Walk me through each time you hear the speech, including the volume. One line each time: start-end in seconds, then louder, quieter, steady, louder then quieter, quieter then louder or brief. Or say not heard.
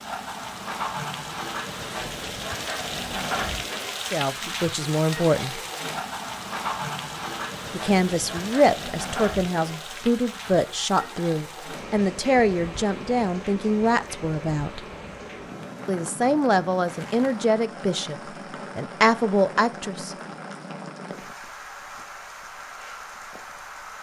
4.1-5.6 brief
7.7-14.8 steady
15.8-18.1 brief
18.8-20.1 brief.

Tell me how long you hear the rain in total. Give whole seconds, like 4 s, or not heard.
24 s.